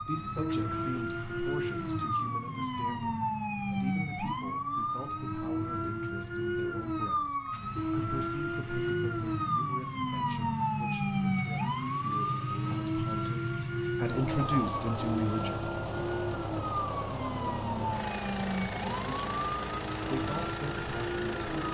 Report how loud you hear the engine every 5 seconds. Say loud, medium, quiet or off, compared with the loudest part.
medium, medium, loud, loud, loud.